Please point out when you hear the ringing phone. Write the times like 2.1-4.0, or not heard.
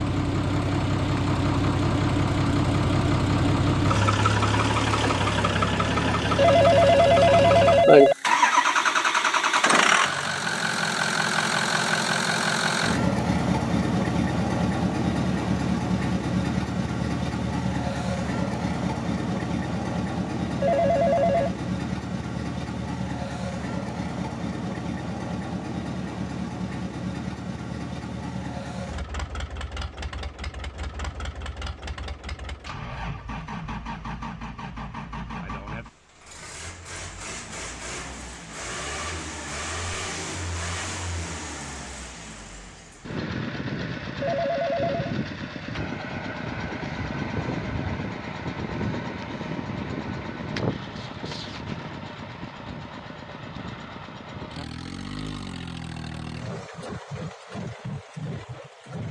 6.3-8.2, 20.6-21.5, 44.2-45.1.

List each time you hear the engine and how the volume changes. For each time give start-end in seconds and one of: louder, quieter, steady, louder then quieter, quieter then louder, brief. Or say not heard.
0.0-59.0 quieter.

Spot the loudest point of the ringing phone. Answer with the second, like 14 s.
8 s.